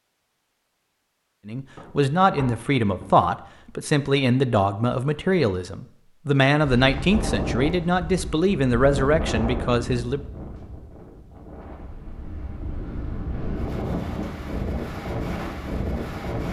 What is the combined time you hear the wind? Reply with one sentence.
The wind can be heard for 10 seconds in total.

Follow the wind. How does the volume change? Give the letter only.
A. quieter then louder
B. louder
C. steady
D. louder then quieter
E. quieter
A.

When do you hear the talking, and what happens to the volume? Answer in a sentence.
You can hear the talking from 1.4 to 10.2 s, at a steady volume.